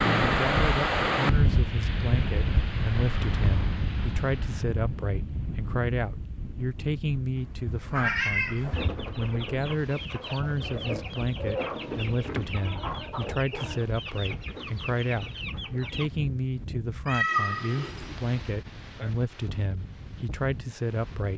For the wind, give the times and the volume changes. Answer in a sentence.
You can hear the wind from 0.0 to 21.3 s, getting quieter.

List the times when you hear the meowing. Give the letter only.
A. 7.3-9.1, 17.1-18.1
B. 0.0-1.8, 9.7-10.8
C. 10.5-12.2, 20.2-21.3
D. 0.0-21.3
A.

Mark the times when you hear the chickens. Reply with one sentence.
The chickens can be heard from 8.7 to 16.1 s.